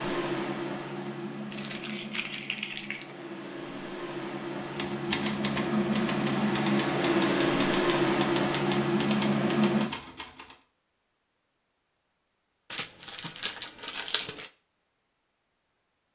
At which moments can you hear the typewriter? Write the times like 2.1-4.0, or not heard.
4.6-10.6.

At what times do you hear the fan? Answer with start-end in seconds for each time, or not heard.
0.0-9.9.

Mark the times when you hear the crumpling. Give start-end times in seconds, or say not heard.
1.5-3.1, 12.7-14.5.